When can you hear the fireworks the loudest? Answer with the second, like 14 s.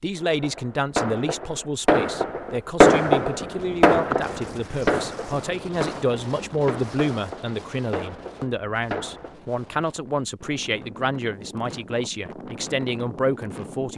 3 s.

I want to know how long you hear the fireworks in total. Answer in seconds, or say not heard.
9 s.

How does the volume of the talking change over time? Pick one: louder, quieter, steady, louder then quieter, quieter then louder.
steady.